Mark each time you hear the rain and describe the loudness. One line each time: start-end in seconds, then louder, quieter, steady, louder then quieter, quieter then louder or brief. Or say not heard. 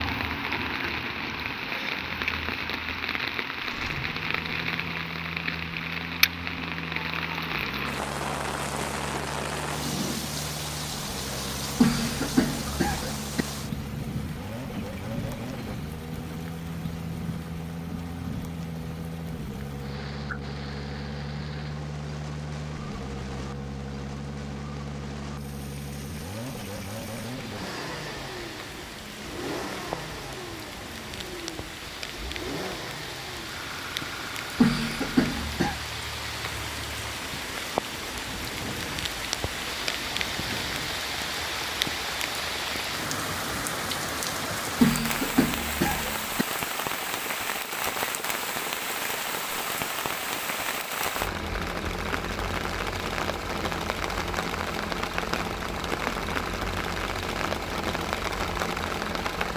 0.0-59.5 quieter then louder.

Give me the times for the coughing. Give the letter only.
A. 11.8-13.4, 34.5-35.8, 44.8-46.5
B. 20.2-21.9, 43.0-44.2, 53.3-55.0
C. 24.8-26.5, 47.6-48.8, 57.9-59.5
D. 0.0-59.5
A.